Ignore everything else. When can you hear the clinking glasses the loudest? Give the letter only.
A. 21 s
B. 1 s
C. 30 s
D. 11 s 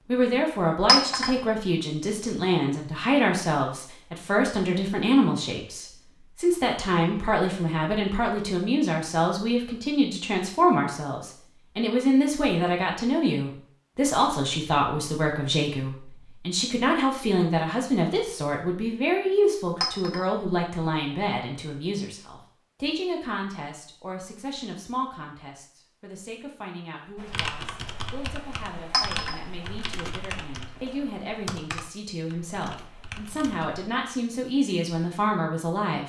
B.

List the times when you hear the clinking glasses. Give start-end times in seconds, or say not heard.
0.8-1.3, 19.8-20.2, 28.9-29.4.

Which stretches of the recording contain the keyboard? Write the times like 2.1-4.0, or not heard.
27.1-33.8.